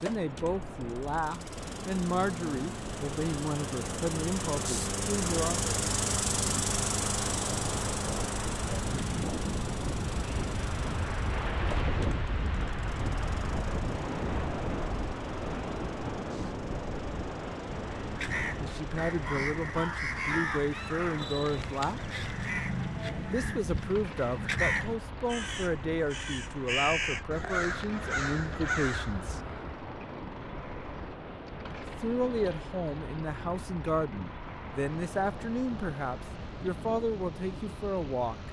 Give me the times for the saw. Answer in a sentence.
You can't hear the saw here.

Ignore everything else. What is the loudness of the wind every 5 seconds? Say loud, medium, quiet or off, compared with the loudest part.
medium, loud, loud, loud, medium, medium, medium, medium.